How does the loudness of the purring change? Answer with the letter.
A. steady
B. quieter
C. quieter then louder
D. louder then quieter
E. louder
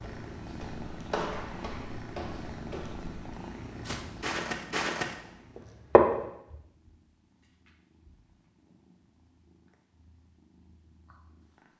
B.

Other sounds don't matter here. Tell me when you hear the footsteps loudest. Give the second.
6 s.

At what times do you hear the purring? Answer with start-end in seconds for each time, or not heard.
0.0-11.7.